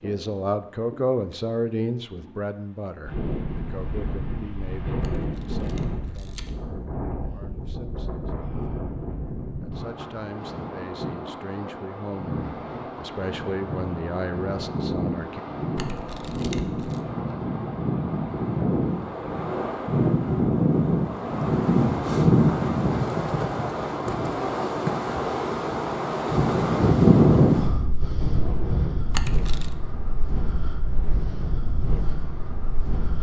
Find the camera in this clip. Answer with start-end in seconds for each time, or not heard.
5.0-6.5, 15.8-17.0, 29.1-29.8.